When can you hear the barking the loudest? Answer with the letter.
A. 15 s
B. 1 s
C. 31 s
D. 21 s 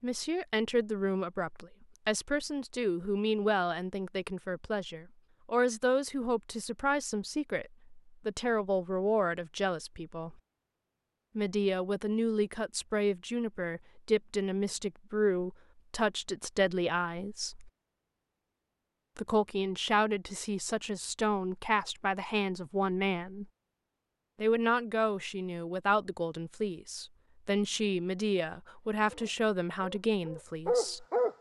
C.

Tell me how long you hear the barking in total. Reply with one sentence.
The barking can be heard for 2 seconds in total.